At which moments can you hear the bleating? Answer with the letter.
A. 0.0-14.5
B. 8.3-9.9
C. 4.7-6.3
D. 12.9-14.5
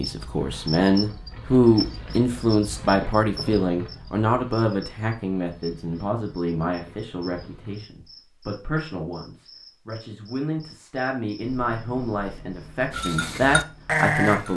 D.